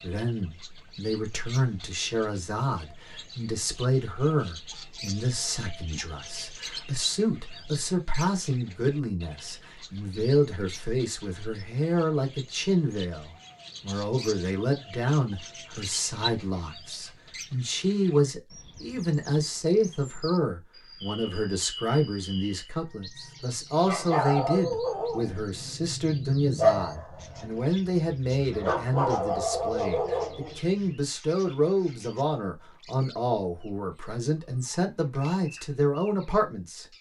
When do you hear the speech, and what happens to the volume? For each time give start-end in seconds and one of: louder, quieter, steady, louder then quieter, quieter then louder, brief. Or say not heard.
0.0-36.9 steady.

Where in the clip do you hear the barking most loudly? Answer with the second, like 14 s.
27 s.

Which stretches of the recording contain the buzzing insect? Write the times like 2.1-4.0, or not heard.
not heard.